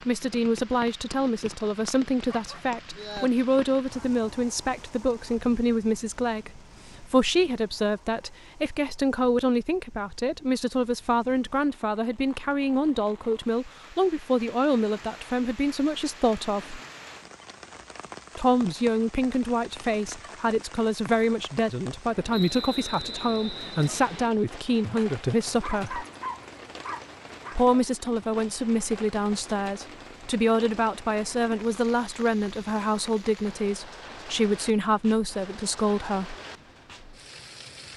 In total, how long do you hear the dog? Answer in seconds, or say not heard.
4 s.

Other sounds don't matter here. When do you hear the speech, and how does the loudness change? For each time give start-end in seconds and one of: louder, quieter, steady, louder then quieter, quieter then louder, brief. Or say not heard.
0.1-16.8 steady
18.4-26.1 steady
27.6-36.4 steady.